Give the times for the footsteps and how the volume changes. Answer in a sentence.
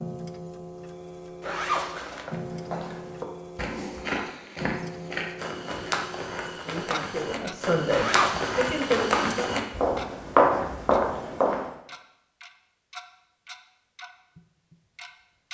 The footsteps can be heard from 2.1 to 11.7 s, getting louder.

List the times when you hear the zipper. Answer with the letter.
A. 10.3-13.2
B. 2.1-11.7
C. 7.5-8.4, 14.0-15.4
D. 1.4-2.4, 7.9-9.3
D.